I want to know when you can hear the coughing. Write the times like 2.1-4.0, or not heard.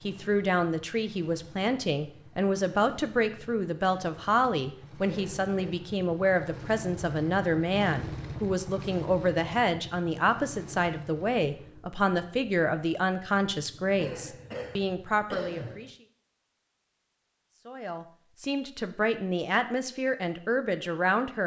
5.0-5.8, 13.9-15.9.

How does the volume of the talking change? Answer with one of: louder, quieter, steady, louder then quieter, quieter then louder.
steady.